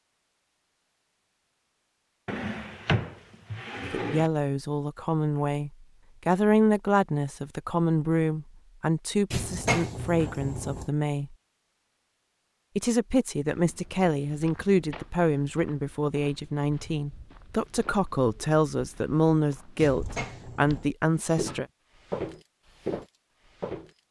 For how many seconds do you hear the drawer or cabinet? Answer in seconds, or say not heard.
5 s.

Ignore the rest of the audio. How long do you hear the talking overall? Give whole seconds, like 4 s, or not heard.
16 s.